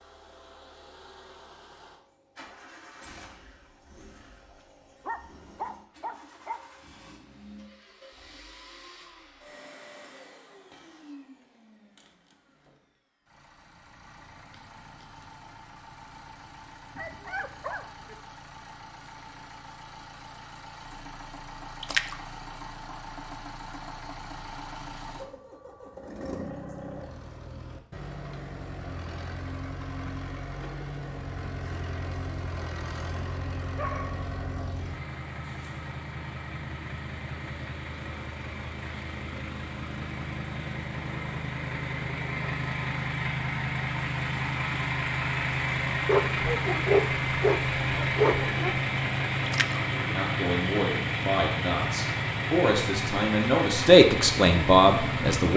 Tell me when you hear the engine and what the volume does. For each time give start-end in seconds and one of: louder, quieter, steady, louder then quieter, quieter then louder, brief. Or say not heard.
0.0-55.5 louder.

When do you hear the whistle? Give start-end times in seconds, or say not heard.
not heard.